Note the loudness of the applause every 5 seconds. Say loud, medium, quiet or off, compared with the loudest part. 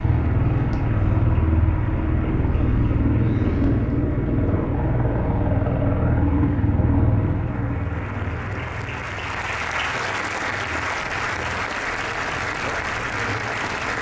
quiet, medium, loud.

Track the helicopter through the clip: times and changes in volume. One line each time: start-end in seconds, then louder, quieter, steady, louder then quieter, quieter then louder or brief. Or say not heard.
0.0-13.9 quieter.